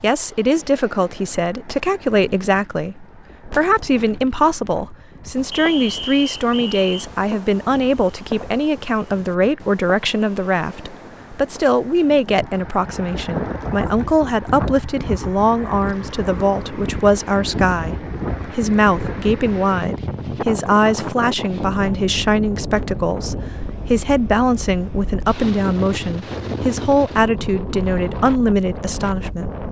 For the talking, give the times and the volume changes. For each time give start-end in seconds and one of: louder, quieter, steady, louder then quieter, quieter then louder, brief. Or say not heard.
0.0-29.6 steady.